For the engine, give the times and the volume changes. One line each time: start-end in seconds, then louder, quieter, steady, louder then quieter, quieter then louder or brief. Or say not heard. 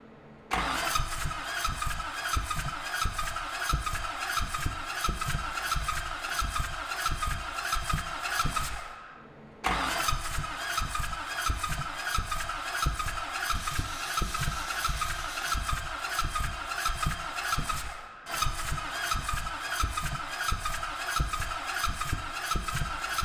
0.0-23.1 steady.